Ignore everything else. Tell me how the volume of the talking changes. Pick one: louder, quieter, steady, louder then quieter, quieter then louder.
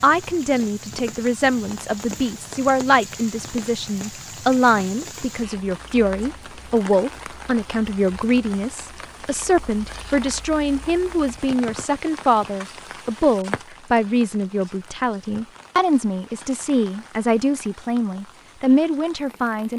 steady.